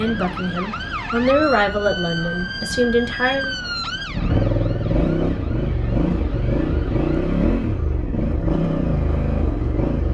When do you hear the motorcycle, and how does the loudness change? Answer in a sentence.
The motorcycle can be heard from 0.0 to 10.0 s, getting louder.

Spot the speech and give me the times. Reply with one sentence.
The speech can be heard from 0.0 to 3.5 s.